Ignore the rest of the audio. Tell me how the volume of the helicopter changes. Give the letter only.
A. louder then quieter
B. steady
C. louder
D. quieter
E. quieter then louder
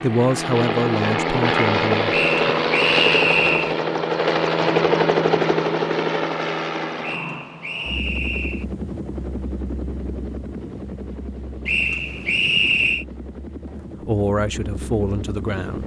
D.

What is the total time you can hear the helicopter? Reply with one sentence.
You can hear the helicopter for 16 seconds altogether.